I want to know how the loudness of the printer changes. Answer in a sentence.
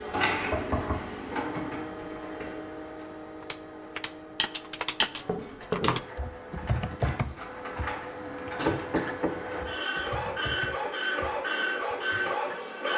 The volume of the printer goes down, then up.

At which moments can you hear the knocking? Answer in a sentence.
The knocking can be heard from 0.5 to 2.2 s, from 5.2 to 6.0 s and from 8.7 to 9.3 s.